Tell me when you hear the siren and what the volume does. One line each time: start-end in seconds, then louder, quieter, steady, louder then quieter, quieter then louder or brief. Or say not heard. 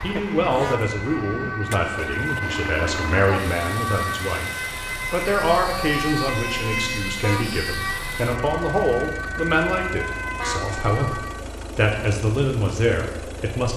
0.0-11.4 steady.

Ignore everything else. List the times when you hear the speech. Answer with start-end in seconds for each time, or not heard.
0.0-4.5, 5.1-13.7.